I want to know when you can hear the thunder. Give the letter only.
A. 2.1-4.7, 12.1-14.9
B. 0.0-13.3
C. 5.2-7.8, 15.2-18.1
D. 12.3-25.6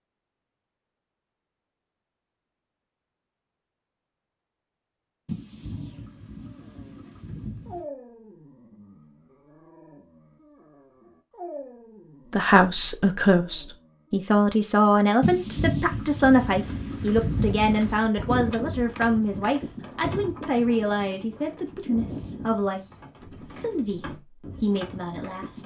C.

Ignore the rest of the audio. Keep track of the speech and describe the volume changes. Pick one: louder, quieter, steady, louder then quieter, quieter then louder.
quieter.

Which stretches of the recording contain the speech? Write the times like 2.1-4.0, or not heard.
12.3-25.6.